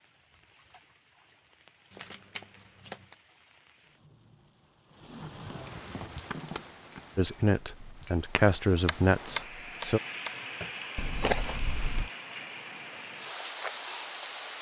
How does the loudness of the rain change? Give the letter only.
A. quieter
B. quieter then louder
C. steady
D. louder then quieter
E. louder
E.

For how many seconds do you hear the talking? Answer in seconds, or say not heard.
3 s.